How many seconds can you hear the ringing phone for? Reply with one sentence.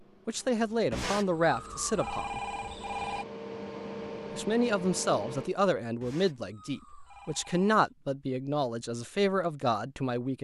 You can hear the ringing phone for 4 seconds altogether.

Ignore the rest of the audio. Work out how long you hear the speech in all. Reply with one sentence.
You can hear the speech for 8 seconds altogether.